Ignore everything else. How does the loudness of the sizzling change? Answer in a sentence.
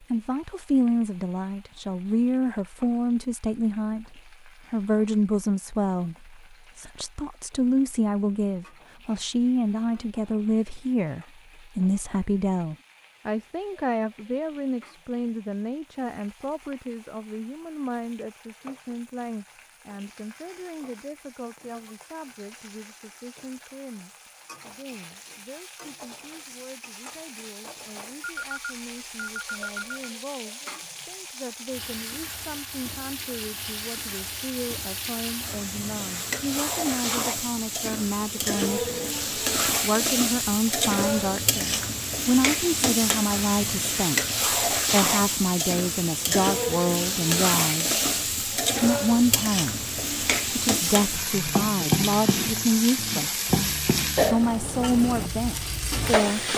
The volume of the sizzling goes up.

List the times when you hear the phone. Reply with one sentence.
The phone can be heard from 28.2 to 30.1 s.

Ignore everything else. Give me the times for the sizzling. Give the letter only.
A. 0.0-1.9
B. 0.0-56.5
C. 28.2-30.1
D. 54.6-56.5
B.